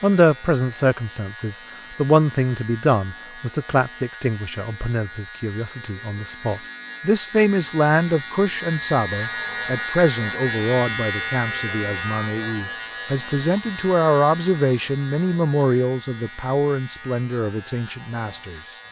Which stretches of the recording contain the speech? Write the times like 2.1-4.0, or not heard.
0.0-18.6.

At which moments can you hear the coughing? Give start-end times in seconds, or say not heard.
not heard.